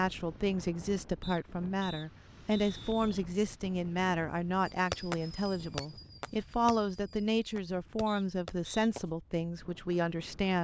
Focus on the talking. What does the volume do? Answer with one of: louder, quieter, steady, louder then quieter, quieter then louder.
steady.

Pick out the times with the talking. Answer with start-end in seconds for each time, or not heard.
0.0-10.5.